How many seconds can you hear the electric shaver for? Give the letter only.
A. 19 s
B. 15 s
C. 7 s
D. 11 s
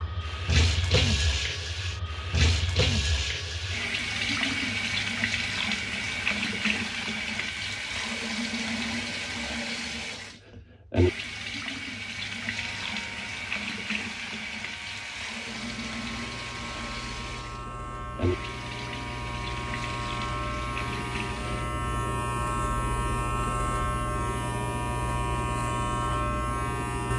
B.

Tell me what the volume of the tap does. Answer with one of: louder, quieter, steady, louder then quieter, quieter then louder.
quieter.